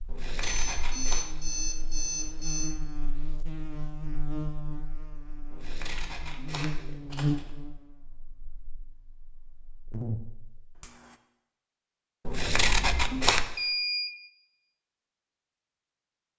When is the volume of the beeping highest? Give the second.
14 s.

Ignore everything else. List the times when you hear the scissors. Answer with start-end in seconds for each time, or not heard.
0.1-1.2, 5.5-7.5, 12.2-13.6.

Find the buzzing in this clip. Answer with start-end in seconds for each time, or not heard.
0.0-11.2.